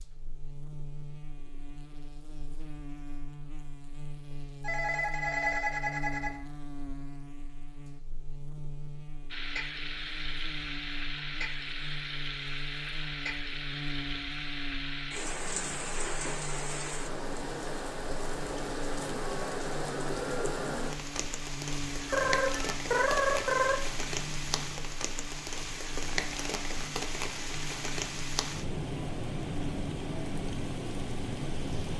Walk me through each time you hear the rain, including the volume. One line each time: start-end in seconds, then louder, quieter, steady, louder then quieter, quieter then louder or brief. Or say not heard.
9.3-31.9 steady.